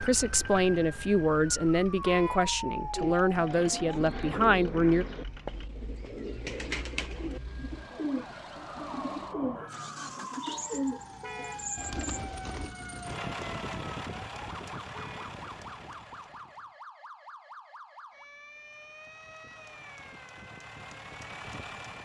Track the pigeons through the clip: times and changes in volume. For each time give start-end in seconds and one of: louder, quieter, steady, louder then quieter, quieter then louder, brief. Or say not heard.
2.9-12.8 steady.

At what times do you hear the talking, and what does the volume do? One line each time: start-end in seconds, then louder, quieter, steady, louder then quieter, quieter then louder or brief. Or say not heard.
0.0-5.0 steady.